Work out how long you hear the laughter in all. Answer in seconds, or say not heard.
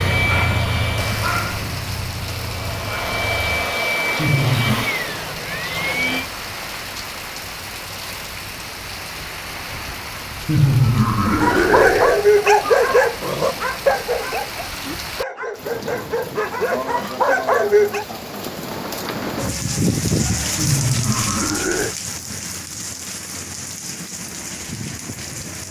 4 s.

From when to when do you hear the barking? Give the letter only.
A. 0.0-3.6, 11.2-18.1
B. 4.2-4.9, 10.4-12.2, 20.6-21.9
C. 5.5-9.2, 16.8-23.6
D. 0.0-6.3
A.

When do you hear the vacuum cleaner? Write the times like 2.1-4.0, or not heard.
0.0-6.3.